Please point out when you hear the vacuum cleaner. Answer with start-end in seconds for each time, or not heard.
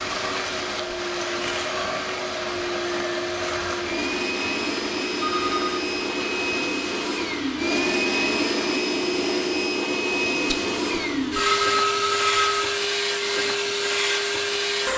0.0-14.9.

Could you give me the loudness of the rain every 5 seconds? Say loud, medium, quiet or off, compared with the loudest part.
loud, loud, off.